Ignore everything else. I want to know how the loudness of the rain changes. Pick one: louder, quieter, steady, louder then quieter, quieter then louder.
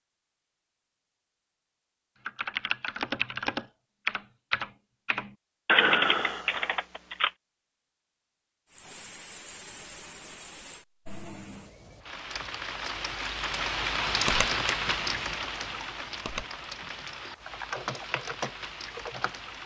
louder then quieter.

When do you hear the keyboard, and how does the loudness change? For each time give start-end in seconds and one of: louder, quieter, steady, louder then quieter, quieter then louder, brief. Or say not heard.
2.2-7.3 louder then quieter
14.2-19.4 louder.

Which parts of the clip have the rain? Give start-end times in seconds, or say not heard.
8.7-19.6.